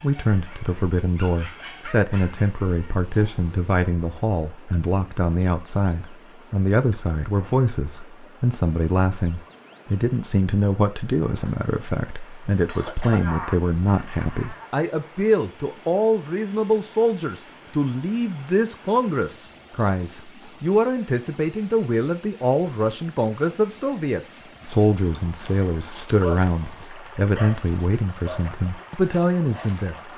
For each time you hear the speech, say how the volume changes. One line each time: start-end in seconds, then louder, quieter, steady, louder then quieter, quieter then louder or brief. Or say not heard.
0.0-30.0 steady.